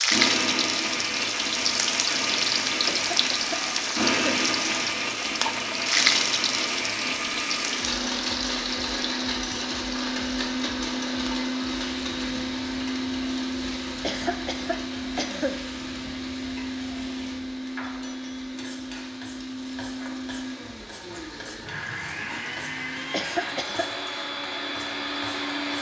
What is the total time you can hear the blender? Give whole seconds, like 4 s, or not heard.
26 s.